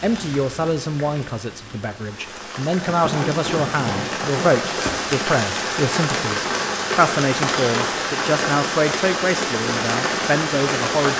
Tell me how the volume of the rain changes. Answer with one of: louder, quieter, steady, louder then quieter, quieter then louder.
louder.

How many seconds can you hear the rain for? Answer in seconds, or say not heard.
11 s.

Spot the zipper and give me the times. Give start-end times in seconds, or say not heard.
2.9-4.7.